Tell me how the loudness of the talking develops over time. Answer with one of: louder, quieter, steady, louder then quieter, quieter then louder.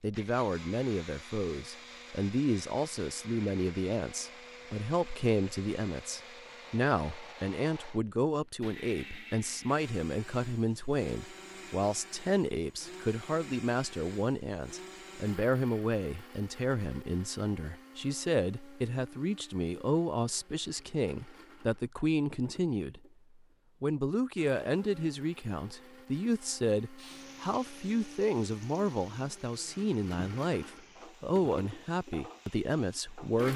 steady.